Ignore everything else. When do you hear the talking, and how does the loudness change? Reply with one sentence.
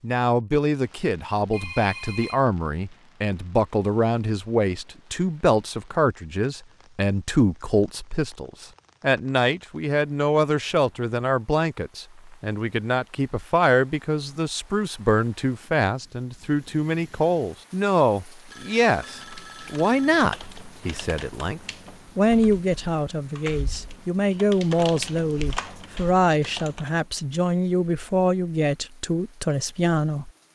The talking can be heard from 0.0 to 30.3 s, at a steady volume.